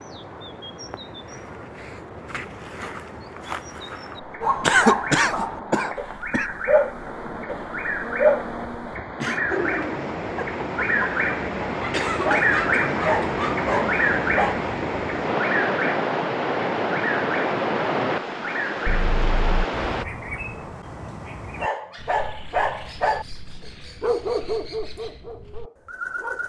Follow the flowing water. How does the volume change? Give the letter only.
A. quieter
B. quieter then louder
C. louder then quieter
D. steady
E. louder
E.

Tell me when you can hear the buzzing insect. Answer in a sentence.
The buzzing insect can't be heard in this clip.